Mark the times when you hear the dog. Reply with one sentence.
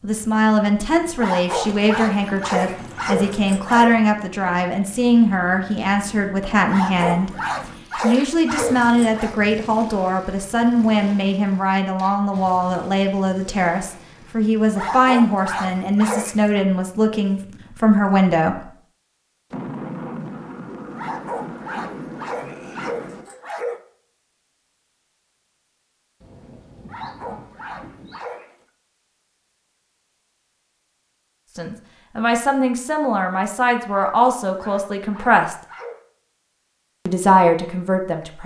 The dog can be heard from 1.1 to 4.0 s, from 6.7 to 9.4 s, from 14.8 to 16.5 s, from 20.9 to 23.8 s, from 26.9 to 28.6 s and from 33.9 to 36.0 s.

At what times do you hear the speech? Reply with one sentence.
You can hear the speech from 0.0 to 18.7 s, from 31.6 to 35.5 s and from 37.0 to 38.4 s.